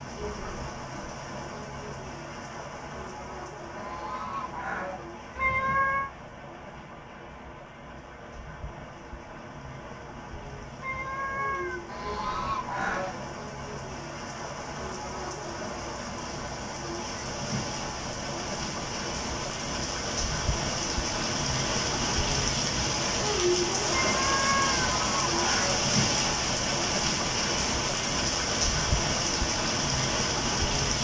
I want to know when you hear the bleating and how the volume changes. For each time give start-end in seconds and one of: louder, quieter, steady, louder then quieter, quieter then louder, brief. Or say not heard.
not heard.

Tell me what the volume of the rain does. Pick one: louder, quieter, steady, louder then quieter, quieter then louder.
louder.